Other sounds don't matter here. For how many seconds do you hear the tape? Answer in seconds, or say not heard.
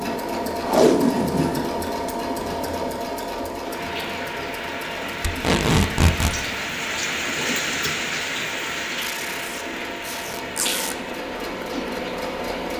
5 s.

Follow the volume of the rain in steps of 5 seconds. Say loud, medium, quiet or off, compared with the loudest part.
medium, loud, medium.